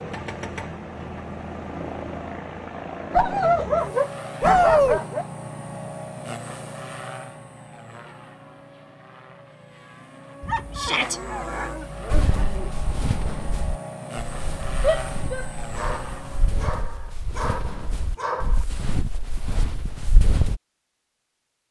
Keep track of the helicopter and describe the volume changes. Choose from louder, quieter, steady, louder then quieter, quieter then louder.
quieter then louder.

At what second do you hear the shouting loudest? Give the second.
5 s.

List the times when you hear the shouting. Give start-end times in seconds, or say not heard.
4.4-5.0, 10.8-11.2, 14.8-15.4.